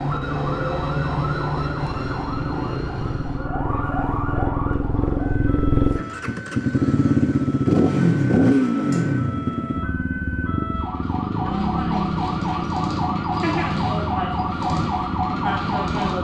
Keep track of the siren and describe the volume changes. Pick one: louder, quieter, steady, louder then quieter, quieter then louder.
quieter then louder.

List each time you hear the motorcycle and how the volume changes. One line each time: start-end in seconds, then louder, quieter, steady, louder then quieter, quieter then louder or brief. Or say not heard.
0.0-16.1 louder then quieter.